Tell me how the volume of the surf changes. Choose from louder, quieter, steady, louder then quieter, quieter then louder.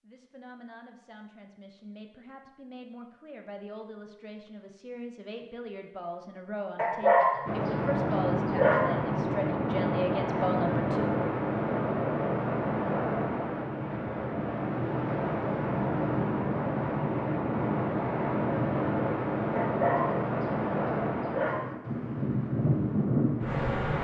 steady.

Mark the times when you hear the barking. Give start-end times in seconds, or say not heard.
6.8-8.8, 19.6-21.6.